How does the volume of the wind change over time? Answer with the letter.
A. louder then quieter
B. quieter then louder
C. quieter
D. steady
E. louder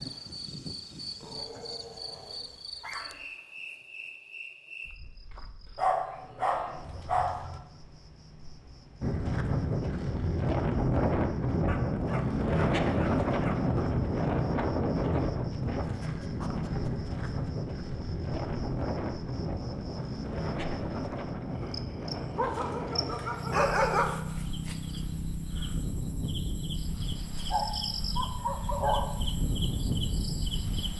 C.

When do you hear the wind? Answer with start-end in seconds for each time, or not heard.
9.0-30.9.